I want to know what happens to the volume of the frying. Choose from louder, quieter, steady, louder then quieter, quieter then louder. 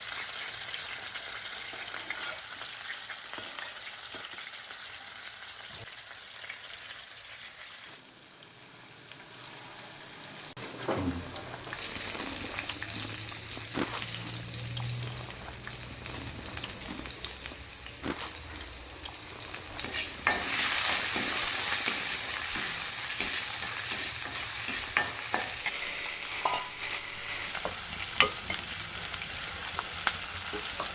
louder.